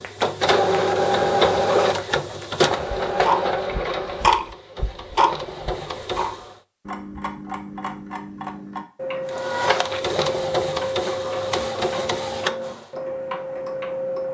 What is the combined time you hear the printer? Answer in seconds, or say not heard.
10 s.